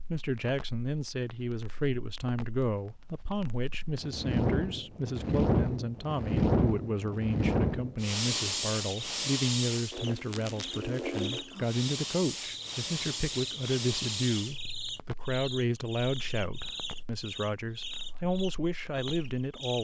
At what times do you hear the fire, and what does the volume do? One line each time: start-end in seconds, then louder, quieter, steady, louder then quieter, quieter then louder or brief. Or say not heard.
0.0-19.7 louder then quieter.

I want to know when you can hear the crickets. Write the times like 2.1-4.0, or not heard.
8.8-19.7.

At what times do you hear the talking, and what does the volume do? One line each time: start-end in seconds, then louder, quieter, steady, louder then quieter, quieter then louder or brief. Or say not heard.
0.1-19.7 steady.